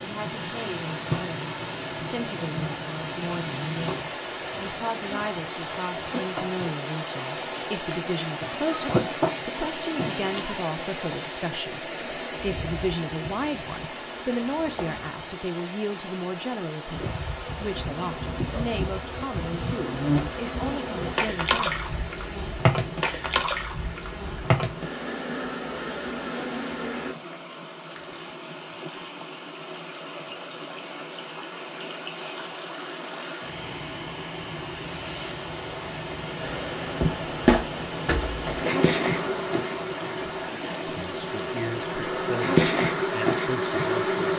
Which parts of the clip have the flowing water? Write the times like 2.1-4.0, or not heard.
0.0-44.3.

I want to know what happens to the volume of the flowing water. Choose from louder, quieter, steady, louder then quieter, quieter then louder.
quieter then louder.